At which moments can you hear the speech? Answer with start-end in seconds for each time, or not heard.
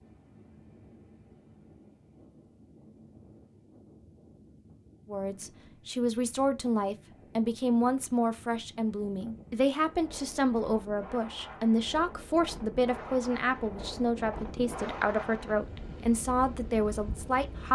5.0-17.7.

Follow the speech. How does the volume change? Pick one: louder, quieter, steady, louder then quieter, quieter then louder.
steady.